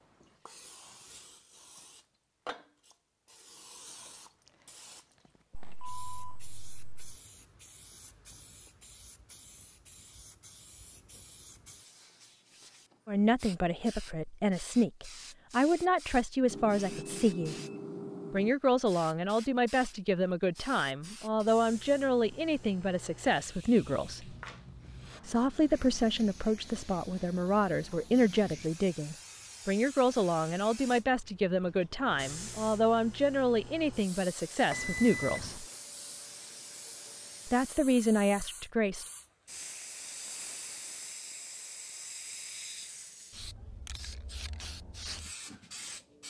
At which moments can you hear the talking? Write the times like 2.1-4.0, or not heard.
13.1-17.6, 18.3-24.4, 25.2-35.6, 37.5-39.0.